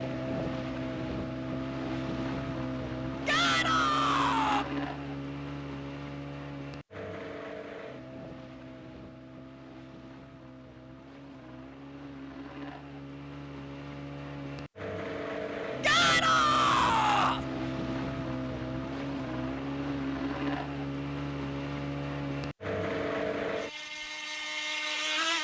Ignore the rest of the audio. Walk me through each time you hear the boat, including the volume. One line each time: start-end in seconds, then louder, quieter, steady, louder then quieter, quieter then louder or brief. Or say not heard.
0.0-25.3 quieter then louder.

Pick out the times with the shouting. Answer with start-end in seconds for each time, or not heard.
3.2-4.7, 15.8-17.4.